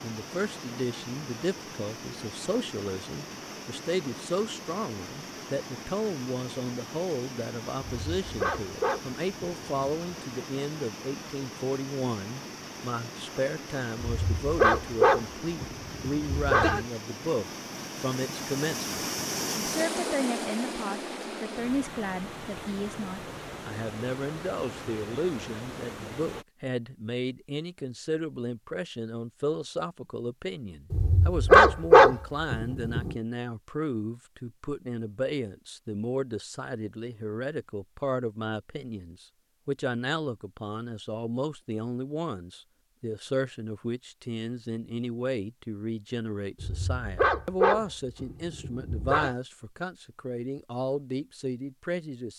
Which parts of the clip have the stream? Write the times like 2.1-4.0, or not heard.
0.0-26.4.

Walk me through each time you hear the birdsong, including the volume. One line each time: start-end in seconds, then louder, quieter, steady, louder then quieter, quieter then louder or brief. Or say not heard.
not heard.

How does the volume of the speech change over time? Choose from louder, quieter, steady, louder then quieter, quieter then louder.
steady.